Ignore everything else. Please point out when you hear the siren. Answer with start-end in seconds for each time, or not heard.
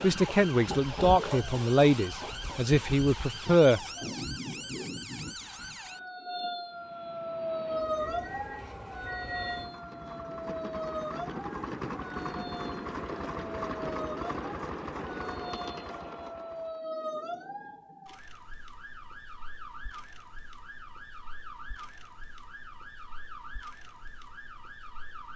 0.0-25.3.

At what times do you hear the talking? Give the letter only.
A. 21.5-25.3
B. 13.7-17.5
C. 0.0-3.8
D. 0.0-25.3
C.